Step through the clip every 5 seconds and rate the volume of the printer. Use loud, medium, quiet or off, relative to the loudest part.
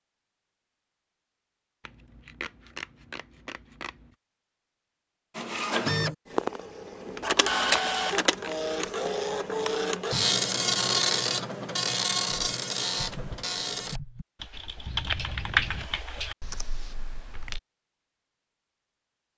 off, loud, loud, off.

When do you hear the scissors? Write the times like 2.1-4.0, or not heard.
1.8-4.1, 7.2-8.8, 14.8-15.9.